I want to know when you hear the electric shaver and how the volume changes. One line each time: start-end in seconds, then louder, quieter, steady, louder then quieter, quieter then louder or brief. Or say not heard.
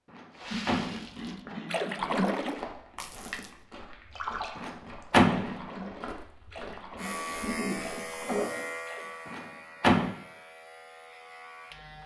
7.0-12.0 quieter.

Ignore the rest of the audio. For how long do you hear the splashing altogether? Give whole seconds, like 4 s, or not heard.
9 s.